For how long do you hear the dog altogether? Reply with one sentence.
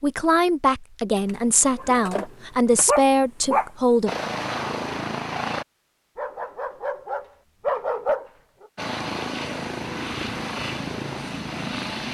The dog can be heard for 5 seconds in total.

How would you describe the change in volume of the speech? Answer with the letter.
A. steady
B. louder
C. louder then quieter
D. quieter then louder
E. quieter
A.